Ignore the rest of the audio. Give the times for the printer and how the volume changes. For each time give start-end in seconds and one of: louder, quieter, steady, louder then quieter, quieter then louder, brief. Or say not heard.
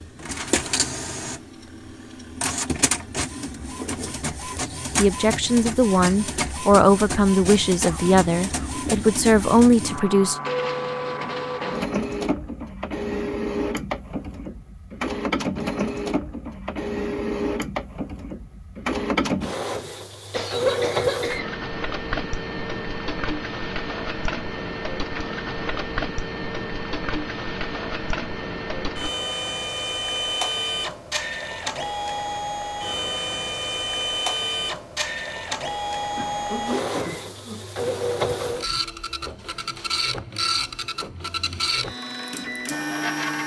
0.0-43.4 steady.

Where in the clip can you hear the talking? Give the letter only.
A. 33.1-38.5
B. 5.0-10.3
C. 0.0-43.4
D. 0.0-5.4
B.